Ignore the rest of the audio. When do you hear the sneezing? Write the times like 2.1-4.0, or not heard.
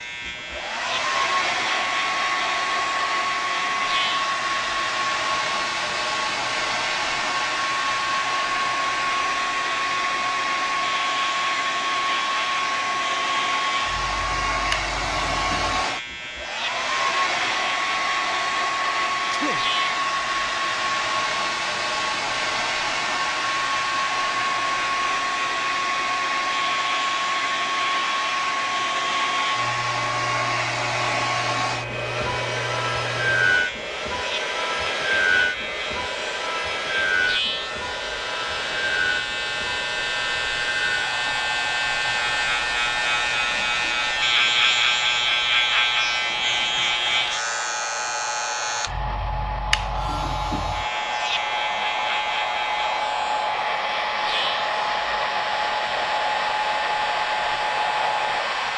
19.1-19.6.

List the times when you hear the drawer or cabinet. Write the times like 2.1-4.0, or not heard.
not heard.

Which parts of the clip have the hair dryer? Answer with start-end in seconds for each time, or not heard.
0.0-58.7.